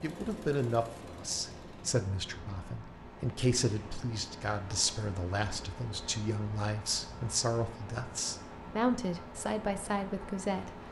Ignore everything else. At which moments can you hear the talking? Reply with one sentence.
The talking can be heard from 0.0 to 10.8 s.